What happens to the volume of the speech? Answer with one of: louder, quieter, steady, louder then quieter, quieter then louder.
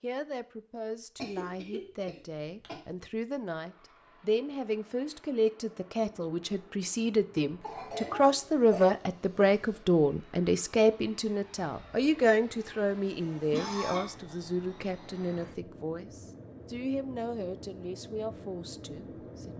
louder then quieter.